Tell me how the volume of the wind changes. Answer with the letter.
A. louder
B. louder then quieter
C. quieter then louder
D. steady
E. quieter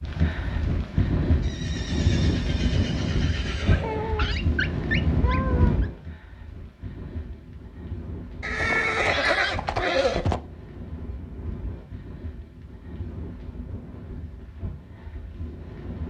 E.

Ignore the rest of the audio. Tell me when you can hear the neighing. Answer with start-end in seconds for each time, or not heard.
1.4-4.2, 8.4-10.4.